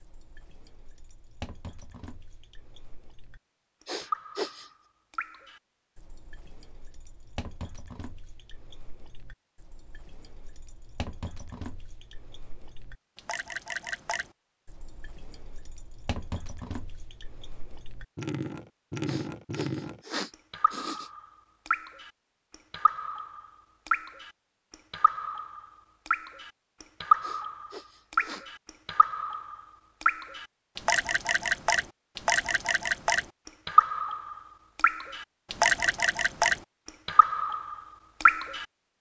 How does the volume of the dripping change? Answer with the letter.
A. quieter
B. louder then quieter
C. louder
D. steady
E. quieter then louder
C.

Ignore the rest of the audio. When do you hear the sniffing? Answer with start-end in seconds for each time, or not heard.
3.9-4.7, 19.1-21.1, 27.2-28.4.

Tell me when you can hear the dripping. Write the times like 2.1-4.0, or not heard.
0.0-38.6.